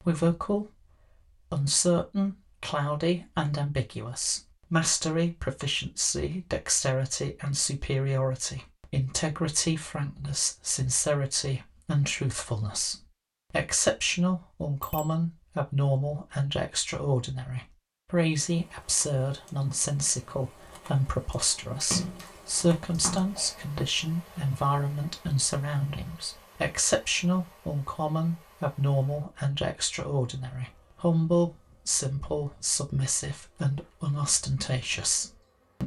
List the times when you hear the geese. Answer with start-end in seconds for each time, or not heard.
not heard.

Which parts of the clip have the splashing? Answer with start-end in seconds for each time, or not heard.
21.8-23.6.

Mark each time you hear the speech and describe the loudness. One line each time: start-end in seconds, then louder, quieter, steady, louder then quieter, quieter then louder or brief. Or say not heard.
0.0-35.8 steady.